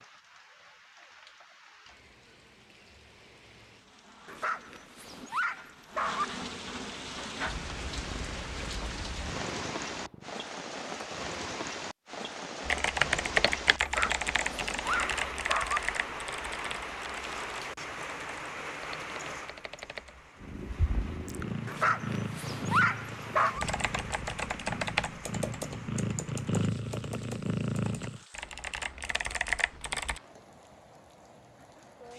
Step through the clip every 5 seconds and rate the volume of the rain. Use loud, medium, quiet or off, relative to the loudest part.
quiet, loud, loud, loud, medium, quiet, quiet.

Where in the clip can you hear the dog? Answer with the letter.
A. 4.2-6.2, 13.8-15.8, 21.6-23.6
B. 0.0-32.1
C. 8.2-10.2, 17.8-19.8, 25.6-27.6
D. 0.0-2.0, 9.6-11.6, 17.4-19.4
A.